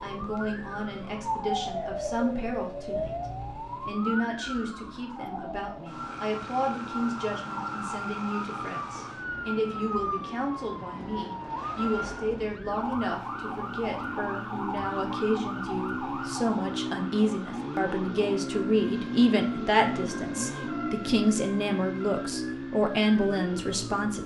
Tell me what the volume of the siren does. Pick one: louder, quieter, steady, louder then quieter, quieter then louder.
quieter.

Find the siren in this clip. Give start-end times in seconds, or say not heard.
0.0-24.2.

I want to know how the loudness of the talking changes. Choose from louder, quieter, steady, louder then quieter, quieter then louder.
louder.